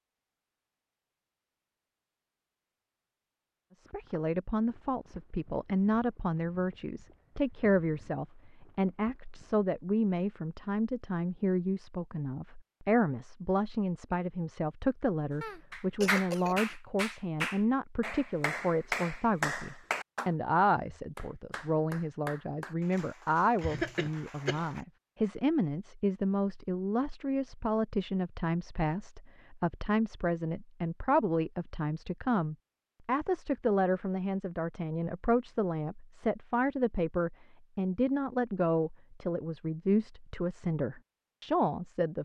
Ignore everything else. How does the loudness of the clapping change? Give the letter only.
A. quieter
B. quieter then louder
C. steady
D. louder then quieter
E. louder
A.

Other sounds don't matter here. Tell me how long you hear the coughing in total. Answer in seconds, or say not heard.
2 s.